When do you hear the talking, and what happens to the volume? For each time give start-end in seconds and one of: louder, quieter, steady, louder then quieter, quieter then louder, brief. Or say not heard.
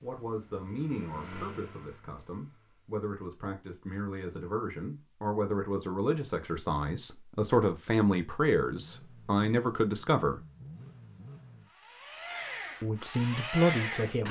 0.0-10.4 louder
12.8-14.2 brief.